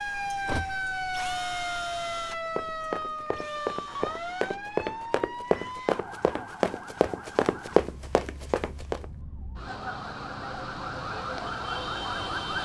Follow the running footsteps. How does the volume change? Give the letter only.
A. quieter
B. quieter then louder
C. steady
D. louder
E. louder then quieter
D.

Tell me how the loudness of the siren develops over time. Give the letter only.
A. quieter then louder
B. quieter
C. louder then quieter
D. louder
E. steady
A.